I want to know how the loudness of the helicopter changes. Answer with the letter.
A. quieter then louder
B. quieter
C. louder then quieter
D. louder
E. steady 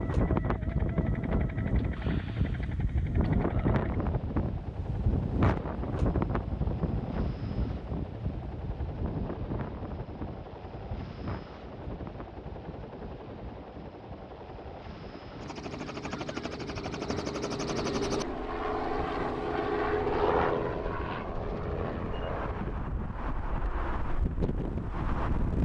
D.